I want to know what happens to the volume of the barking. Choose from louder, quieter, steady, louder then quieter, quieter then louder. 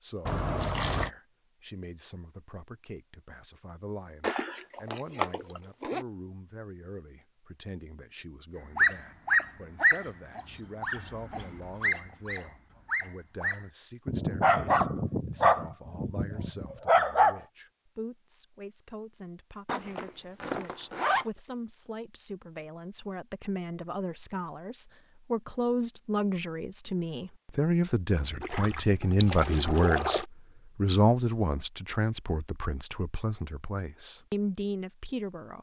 quieter then louder.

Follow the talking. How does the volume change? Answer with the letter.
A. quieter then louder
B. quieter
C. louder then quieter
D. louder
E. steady
D.